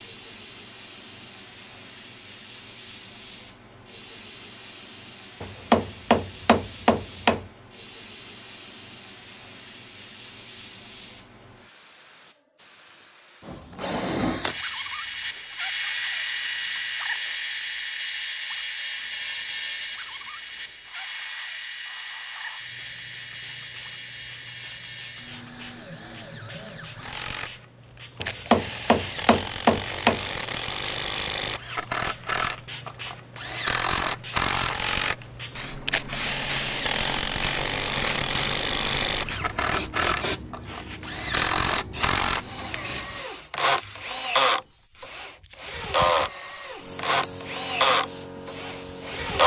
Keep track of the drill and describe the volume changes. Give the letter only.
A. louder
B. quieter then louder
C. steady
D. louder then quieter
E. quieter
B.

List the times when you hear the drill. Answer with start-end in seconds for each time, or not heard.
13.4-49.4.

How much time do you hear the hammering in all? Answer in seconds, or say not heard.
4 s.